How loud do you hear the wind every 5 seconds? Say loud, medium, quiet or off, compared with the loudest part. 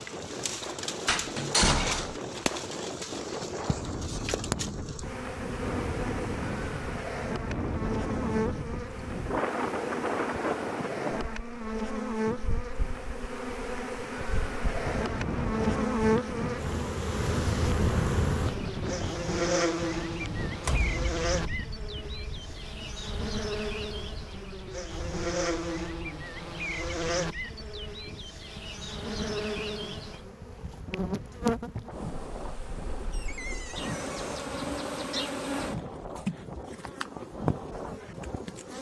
loud, loud, loud, loud, medium, quiet, medium, medium.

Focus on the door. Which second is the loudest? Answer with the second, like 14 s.
2 s.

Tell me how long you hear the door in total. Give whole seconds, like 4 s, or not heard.
3 s.